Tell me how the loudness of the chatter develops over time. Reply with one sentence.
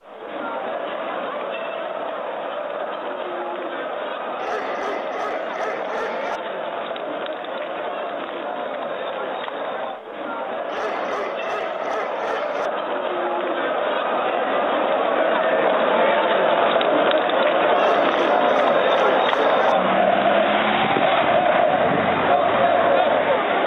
The volume of the chatter goes up.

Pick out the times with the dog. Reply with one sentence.
You can hear the dog from 4.3 to 6.4 s, from 10.7 to 12.7 s and from 17.8 to 19.8 s.